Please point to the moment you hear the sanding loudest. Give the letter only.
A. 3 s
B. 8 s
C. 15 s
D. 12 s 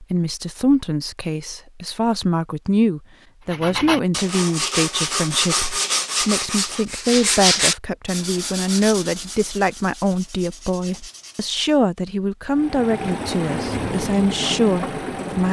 B.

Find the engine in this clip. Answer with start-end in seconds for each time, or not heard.
12.4-15.4.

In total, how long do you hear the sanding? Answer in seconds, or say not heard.
8 s.